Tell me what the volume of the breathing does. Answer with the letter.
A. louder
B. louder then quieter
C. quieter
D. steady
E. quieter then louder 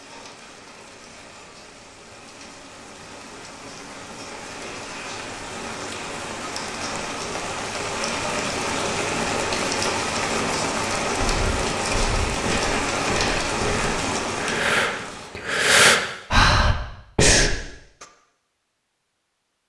A.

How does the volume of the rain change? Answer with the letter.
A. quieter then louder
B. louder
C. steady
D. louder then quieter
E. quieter
B.